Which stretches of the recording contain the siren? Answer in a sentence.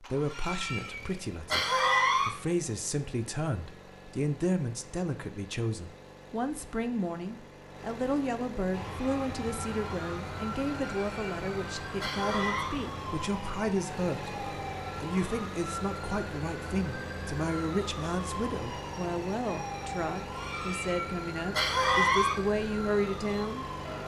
You can hear the siren from 8.7 to 24.0 s.